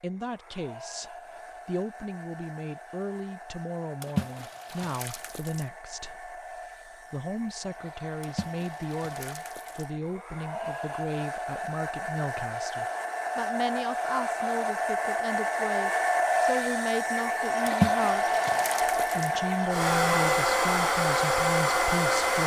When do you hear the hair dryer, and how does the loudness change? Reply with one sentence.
You can hear the hair dryer from 0.0 to 22.4 s, getting louder.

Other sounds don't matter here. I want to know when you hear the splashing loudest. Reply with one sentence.
The loudest moment of the splashing is at 18 seconds.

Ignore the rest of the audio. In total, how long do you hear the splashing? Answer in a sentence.
You can hear the splashing for 5 seconds altogether.